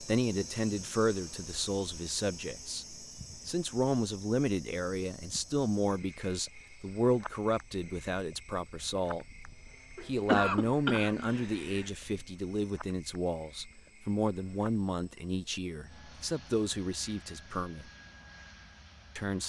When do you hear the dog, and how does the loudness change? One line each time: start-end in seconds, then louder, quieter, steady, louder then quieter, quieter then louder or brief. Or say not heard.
not heard.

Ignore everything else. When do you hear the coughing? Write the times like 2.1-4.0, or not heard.
9.9-11.9.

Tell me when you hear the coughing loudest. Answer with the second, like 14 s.
10 s.